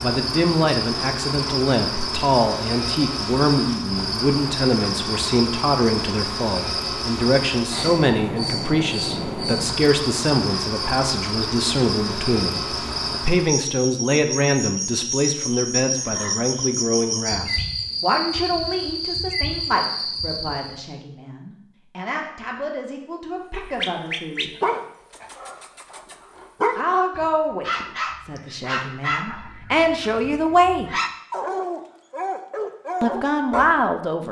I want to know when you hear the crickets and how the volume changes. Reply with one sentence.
You can hear the crickets from 0.0 to 20.9 s, at a steady volume.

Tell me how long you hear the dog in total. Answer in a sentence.
The dog can be heard for 10 seconds in total.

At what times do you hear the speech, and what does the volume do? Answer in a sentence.
You can hear the speech from 0.0 to 24.5 s, getting quieter; from 26.8 to 30.9 s, getting quieter then louder; and briefly from 33.0 to 34.2 s.